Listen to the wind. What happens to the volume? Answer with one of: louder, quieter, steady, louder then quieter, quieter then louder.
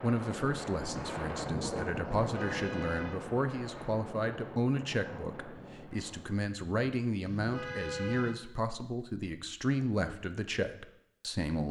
quieter.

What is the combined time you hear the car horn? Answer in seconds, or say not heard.
2 s.